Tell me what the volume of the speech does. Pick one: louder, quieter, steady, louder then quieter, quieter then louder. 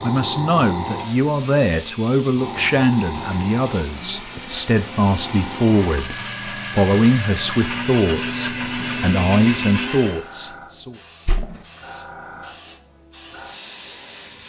steady.